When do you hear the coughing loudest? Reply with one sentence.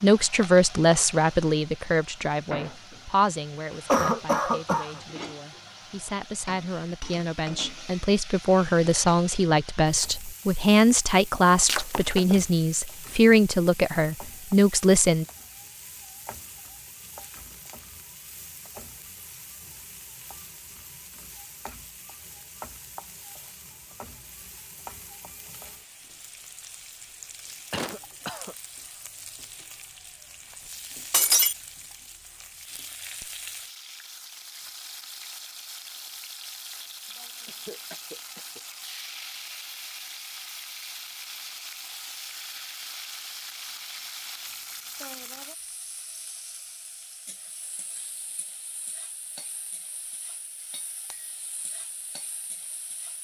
The volume of the coughing peaks at 4 seconds.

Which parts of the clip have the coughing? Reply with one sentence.
You can hear the coughing from 3.9 to 5.0 s, from 27.7 to 28.6 s and from 37.5 to 38.6 s.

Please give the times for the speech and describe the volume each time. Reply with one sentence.
The speech can be heard from 0.0 to 15.2 s, getting quieter then louder.